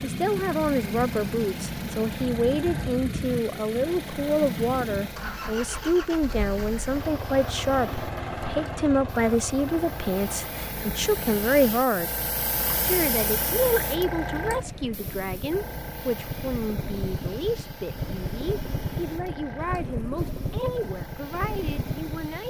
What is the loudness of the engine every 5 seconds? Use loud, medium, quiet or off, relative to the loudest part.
loud, loud, medium, loud, loud.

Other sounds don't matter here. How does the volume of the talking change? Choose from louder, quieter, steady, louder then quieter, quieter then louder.
quieter.